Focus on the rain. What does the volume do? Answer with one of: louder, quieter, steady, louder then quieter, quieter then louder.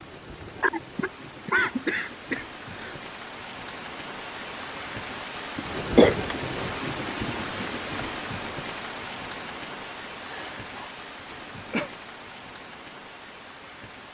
louder then quieter.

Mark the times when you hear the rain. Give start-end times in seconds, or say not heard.
0.0-14.0.